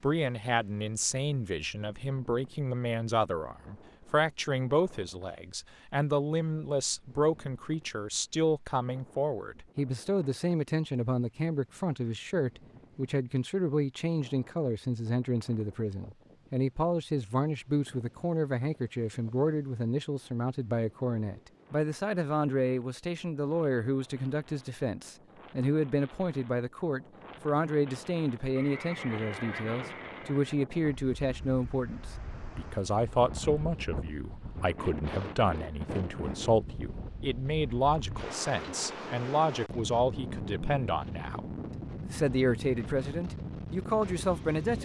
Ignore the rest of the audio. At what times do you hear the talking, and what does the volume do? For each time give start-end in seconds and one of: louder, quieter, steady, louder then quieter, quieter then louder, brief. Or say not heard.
0.0-44.8 steady.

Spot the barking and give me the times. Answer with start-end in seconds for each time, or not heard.
not heard.